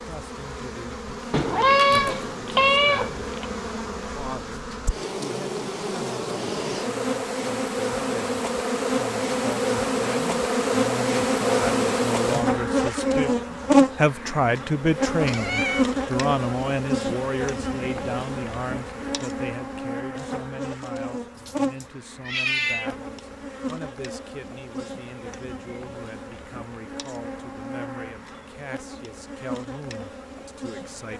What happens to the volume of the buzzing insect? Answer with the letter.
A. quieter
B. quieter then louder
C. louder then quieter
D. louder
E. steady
C.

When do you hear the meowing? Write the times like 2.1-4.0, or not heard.
1.3-3.5, 15.2-15.8, 21.4-22.9.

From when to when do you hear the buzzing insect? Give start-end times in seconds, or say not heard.
0.0-31.1.